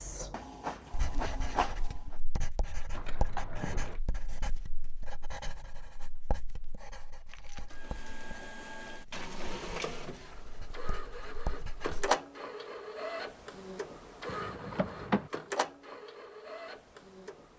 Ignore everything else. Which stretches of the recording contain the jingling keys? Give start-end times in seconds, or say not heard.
2.9-4.0, 7.2-7.8, 14.2-15.3.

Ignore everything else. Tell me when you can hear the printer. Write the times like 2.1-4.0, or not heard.
0.0-2.1, 7.5-17.5.